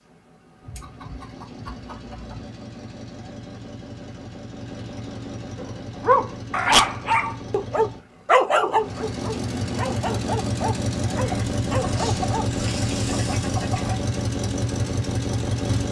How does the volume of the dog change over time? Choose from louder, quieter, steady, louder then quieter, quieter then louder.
quieter.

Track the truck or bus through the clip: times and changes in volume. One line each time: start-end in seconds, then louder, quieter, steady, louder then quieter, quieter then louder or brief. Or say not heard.
0.0-15.8 louder.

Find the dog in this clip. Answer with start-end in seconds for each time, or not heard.
5.6-12.5.